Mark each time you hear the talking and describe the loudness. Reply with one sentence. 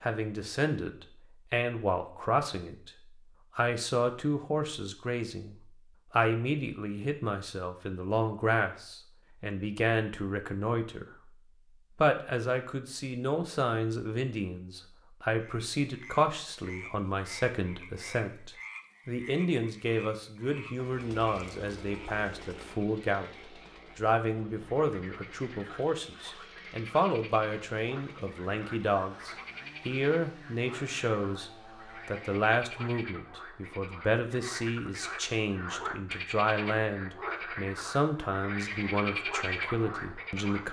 The talking can be heard from 0.0 to 11.3 s, at a steady volume; and from 11.9 to 40.6 s, at a steady volume.